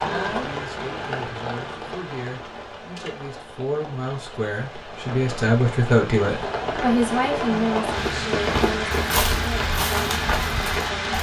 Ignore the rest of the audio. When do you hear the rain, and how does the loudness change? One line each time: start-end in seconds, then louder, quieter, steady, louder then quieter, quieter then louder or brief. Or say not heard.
0.0-11.1 quieter then louder.